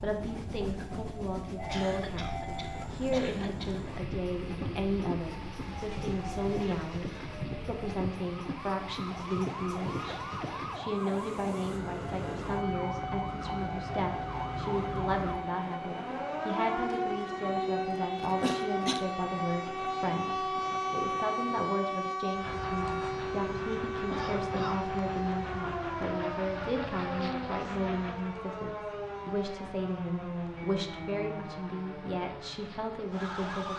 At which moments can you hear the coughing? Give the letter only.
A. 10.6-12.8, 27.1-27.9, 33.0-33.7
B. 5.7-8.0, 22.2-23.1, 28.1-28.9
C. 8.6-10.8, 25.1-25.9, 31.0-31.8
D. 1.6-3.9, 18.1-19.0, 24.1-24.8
D.